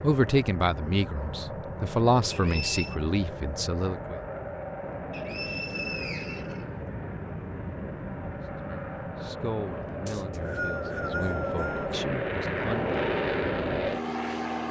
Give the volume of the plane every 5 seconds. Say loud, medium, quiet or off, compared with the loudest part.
medium, medium, loud.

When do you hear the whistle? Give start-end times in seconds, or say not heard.
2.3-3.0, 5.1-6.7, 10.1-11.9.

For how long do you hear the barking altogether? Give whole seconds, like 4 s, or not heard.
not heard.